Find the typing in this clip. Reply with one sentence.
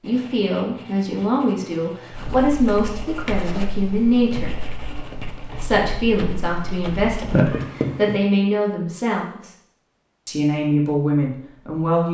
The typing can be heard from 2.1 to 7.5 s.